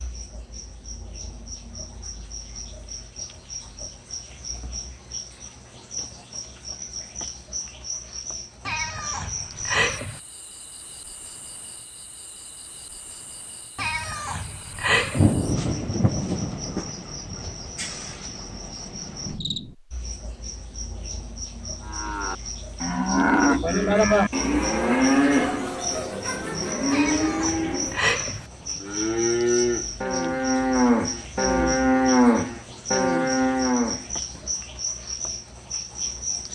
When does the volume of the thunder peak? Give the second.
15 s.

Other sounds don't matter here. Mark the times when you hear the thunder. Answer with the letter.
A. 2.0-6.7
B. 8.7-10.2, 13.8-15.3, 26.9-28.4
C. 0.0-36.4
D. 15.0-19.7
D.